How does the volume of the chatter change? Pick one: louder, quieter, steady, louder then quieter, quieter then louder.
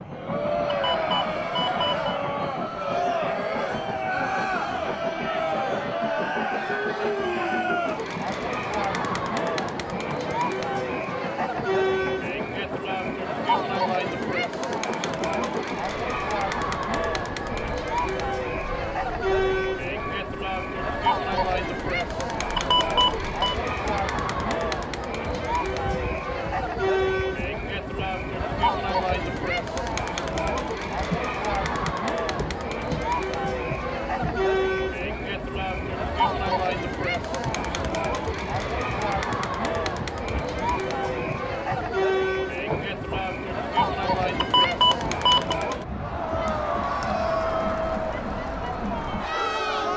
steady.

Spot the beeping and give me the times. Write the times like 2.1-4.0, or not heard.
0.7-2.1, 22.6-23.6, 44.4-45.5.